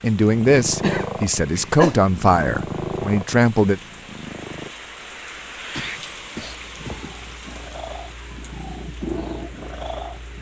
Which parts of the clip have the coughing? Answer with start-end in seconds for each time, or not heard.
0.6-1.9, 5.7-7.4.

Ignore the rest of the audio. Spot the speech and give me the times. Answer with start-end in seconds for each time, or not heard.
0.0-3.8.